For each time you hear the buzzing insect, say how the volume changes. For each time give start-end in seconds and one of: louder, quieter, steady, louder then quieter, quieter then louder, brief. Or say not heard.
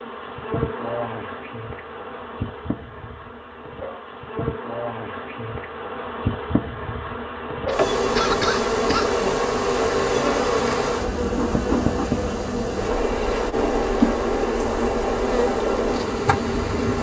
0.0-16.9 louder.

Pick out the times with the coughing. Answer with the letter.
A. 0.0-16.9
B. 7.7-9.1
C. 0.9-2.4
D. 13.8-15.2
B.